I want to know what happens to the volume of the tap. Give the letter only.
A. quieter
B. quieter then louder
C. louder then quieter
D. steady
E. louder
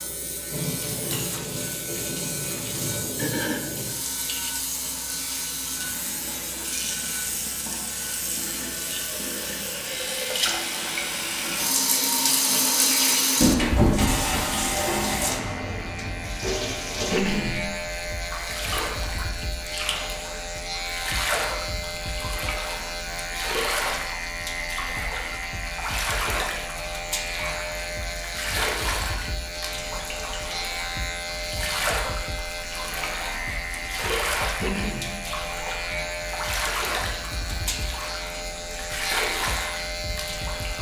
C.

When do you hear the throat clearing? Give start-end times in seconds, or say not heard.
3.0-3.6, 17.1-17.7, 34.6-35.2.